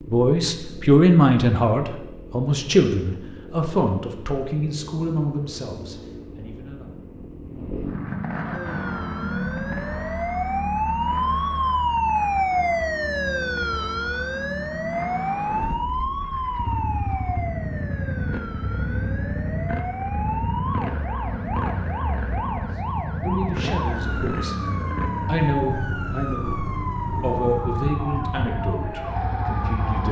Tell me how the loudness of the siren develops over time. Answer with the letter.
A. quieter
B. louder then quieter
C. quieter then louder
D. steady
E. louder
A.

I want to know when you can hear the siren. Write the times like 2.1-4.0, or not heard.
8.5-30.0.